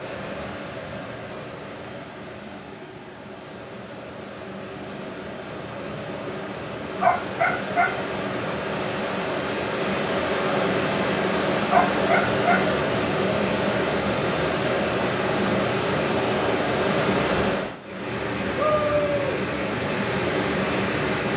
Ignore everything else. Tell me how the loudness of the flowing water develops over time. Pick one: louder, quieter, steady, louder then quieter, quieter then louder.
louder.